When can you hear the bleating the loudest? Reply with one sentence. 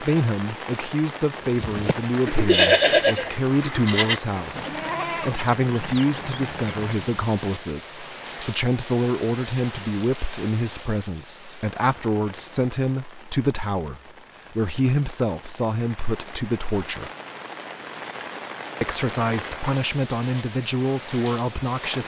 The loudest moment of the bleating is at 3 seconds.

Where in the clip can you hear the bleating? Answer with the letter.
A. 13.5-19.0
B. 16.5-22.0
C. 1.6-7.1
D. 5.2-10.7
C.